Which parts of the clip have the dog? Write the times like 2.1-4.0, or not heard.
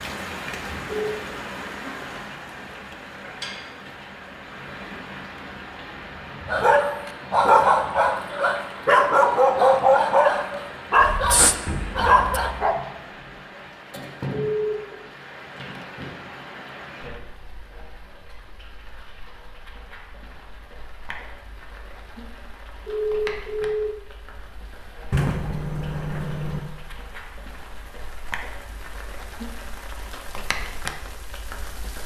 6.5-12.8.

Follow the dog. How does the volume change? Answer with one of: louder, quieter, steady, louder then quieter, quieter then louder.
steady.